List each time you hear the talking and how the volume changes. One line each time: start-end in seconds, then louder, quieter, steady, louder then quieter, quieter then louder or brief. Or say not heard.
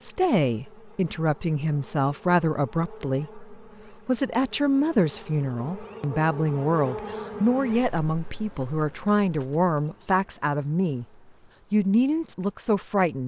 0.0-11.1 steady
11.7-13.2 brief.